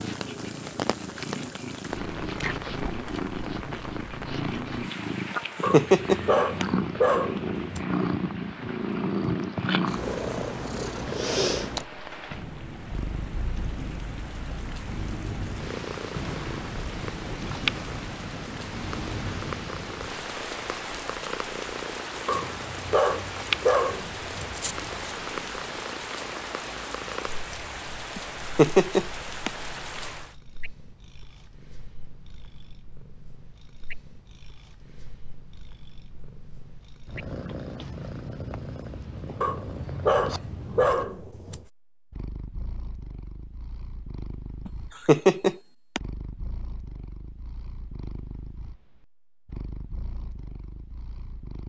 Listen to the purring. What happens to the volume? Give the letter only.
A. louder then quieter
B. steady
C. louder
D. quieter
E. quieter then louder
D.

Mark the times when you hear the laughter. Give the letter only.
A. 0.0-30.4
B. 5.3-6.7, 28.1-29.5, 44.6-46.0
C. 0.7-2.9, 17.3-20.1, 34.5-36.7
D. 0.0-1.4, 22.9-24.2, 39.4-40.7
B.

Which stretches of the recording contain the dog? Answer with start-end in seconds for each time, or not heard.
5.6-7.8, 22.2-25.1, 39.4-41.6.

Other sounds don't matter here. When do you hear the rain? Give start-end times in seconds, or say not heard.
0.0-30.4.